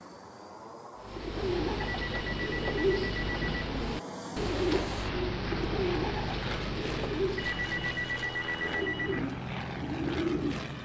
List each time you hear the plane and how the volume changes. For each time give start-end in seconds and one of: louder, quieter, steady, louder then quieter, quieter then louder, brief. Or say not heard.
0.0-10.8 louder.